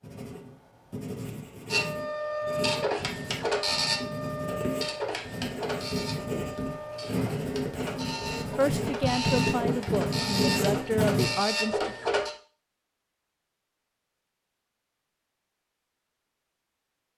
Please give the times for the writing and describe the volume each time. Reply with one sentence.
The writing can be heard from 0.0 to 11.3 s, getting louder.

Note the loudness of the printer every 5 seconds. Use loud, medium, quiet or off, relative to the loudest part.
loud, medium, loud, off.